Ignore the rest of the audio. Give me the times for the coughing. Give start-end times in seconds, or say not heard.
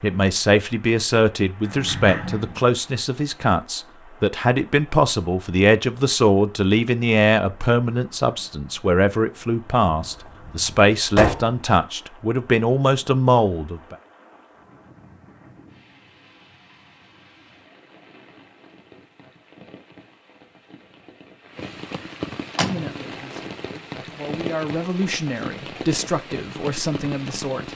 not heard.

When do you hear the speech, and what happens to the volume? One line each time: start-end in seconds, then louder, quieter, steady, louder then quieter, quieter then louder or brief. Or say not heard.
0.0-13.9 steady
22.6-27.7 louder.